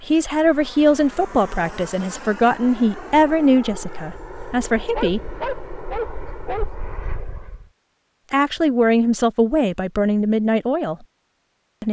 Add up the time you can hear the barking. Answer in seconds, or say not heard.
2 s.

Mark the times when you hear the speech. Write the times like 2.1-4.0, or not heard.
0.1-5.2, 8.3-10.9.